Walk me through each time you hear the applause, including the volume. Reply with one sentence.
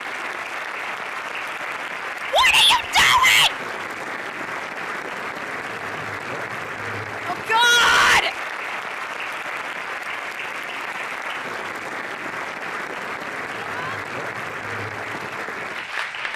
The applause can be heard from 0.0 to 16.3 s, at a steady volume.